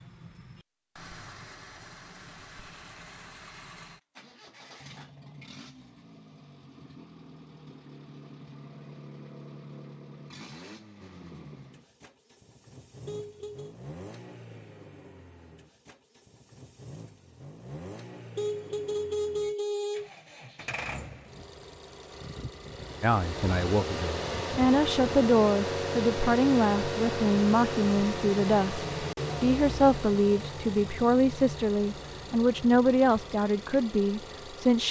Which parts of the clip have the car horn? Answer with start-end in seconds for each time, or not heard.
13.1-13.8, 18.4-20.1.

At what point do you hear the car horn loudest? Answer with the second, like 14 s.
19 s.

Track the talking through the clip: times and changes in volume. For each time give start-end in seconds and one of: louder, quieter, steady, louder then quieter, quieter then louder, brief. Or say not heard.
23.0-34.8 steady.